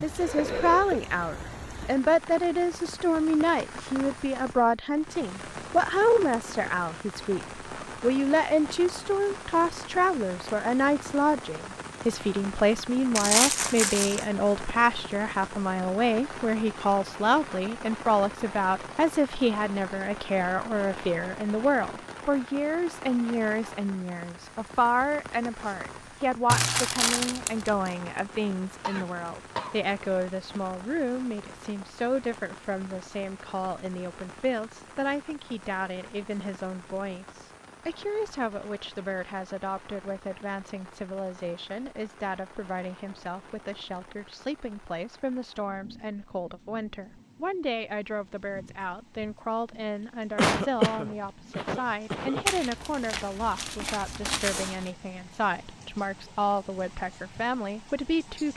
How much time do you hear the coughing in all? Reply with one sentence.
The coughing can be heard for 4 seconds in total.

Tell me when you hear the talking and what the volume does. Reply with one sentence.
You can hear the talking from 0.0 to 58.5 s, getting quieter.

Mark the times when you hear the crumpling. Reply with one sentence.
You can hear the crumpling from 13.2 to 14.2 s, from 26.4 to 27.9 s and from 52.5 to 54.9 s.